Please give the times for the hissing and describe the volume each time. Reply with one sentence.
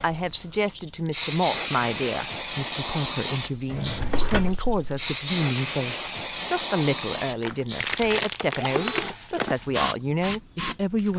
You can hear the hissing from 0.0 to 11.1 s, at a steady volume.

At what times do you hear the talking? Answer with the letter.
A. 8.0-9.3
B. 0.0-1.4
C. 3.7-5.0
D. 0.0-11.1
D.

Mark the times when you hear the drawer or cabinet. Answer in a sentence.
The drawer or cabinet can be heard from 3.7 to 5.0 s.